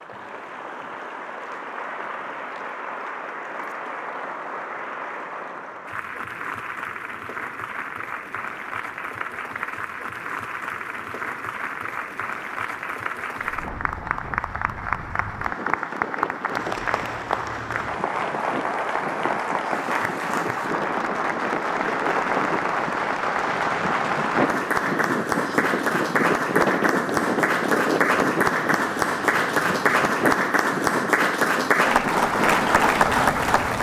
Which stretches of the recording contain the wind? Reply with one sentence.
You can hear the wind from 13.4 to 33.7 s.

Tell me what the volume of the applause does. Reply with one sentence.
The volume of the applause goes up.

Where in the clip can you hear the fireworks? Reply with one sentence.
You can't hear the fireworks here.